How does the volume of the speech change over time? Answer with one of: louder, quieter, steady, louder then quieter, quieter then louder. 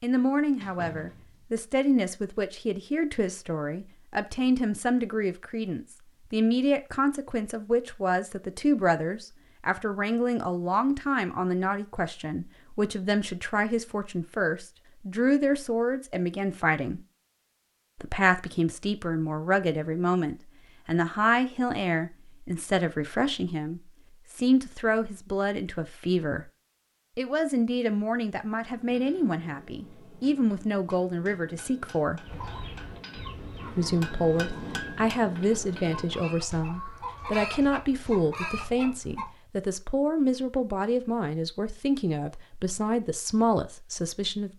steady.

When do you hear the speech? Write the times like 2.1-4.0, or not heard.
0.0-17.0, 18.0-26.4, 27.1-32.2, 33.8-44.5.